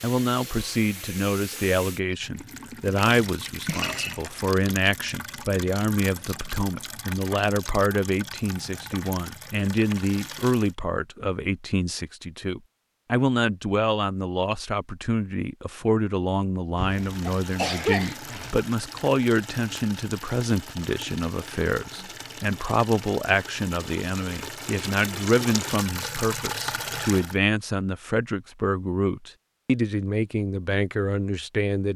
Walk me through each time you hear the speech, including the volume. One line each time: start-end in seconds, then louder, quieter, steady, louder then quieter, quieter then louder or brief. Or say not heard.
0.0-31.9 steady.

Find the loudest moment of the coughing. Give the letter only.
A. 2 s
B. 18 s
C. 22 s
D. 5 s
B.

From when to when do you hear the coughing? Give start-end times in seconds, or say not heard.
3.6-4.2, 16.8-18.6.